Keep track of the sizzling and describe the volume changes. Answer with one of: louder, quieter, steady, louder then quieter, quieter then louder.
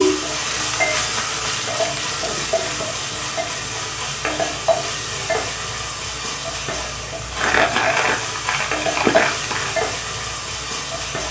steady.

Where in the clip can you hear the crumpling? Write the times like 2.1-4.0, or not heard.
0.5-2.5, 7.3-9.8.